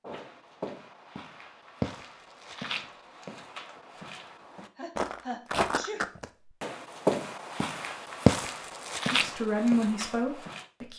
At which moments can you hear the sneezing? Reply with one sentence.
The sneezing can be heard from 4.8 to 6.1 s.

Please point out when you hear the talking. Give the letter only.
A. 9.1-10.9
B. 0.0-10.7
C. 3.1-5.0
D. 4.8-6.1
A.